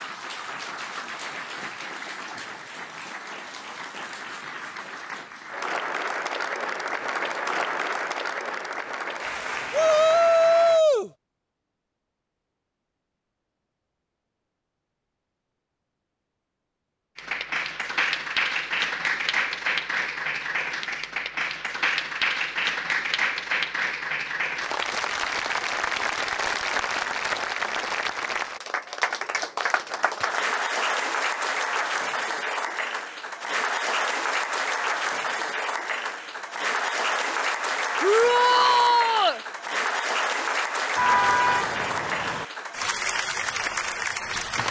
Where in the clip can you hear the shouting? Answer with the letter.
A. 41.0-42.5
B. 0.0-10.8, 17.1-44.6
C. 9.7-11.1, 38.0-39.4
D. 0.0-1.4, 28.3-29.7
C.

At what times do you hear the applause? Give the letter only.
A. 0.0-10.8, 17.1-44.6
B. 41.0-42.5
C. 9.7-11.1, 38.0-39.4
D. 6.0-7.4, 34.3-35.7
A.